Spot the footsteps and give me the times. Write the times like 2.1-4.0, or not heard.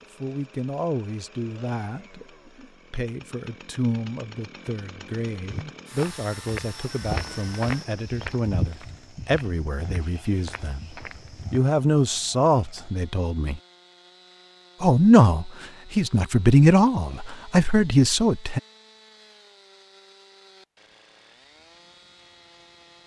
5.4-11.7.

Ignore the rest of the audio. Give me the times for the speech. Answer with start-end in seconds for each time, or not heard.
0.2-13.6, 14.8-18.6.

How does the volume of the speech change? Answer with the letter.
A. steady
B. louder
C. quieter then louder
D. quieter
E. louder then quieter
B.